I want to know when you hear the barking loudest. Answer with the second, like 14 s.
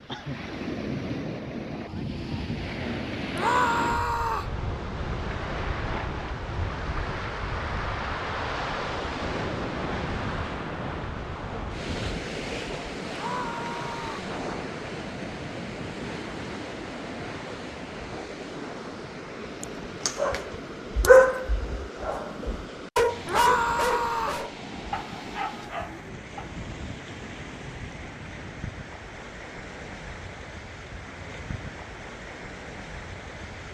21 s.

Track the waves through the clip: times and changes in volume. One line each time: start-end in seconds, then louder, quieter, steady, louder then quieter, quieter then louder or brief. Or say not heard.
0.0-33.6 quieter.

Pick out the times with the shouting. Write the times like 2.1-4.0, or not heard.
3.4-4.5, 13.1-14.3, 23.2-24.4.